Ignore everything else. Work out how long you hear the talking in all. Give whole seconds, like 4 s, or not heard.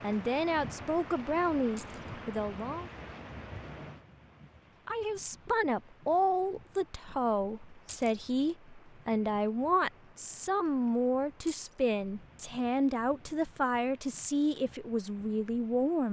14 s.